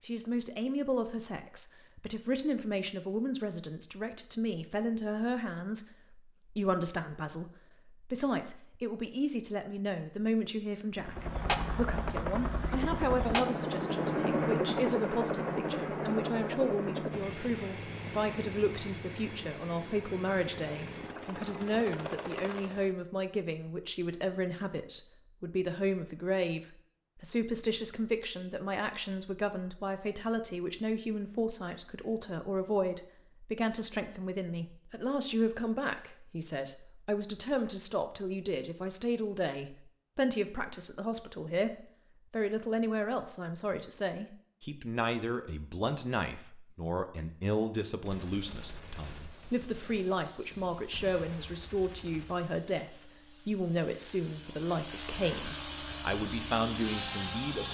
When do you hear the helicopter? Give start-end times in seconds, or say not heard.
10.9-22.9, 49.1-57.6.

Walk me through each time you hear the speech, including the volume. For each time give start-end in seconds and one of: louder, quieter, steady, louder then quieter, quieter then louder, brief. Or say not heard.
0.0-57.6 steady.